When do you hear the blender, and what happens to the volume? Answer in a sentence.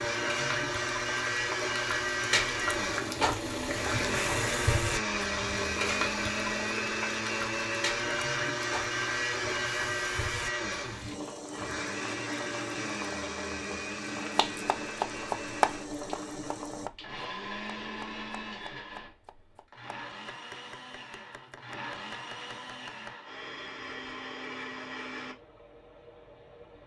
The blender can be heard from 0.0 to 26.8 s, getting quieter.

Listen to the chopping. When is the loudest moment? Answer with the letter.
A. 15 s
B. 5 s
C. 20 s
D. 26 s
A.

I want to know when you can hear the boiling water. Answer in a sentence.
The boiling water can be heard from 0.1 to 16.9 s.